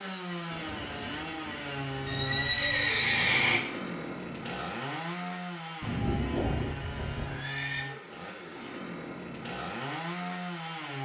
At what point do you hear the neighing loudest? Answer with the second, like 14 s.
3 s.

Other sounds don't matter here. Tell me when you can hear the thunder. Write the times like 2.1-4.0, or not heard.
0.5-2.2.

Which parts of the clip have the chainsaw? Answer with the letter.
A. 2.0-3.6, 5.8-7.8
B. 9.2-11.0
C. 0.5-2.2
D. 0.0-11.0
D.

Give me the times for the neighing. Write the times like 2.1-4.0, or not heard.
2.0-3.6, 5.8-7.8.